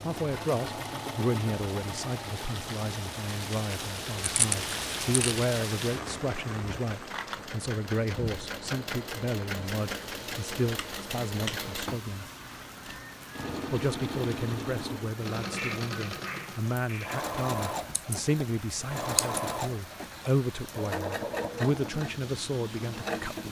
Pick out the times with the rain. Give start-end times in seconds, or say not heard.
0.0-23.4.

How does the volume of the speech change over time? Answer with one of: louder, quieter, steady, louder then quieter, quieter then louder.
steady.